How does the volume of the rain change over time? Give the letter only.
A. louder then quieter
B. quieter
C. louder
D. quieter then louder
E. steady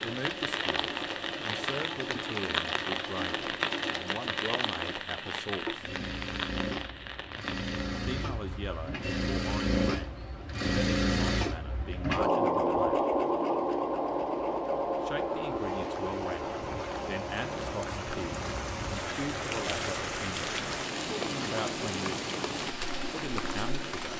D.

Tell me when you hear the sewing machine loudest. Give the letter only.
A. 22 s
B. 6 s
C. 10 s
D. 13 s
D.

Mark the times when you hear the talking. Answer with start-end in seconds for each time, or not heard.
0.0-5.9, 7.9-12.9, 15.0-22.1, 23.1-24.1.